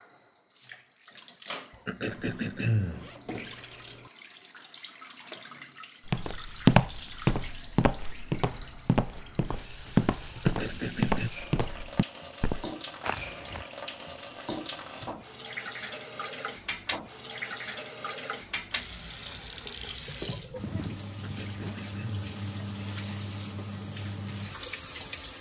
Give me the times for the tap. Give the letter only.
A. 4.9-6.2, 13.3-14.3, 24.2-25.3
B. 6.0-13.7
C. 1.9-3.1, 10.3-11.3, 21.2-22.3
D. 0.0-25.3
D.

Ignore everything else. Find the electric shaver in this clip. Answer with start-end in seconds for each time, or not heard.
not heard.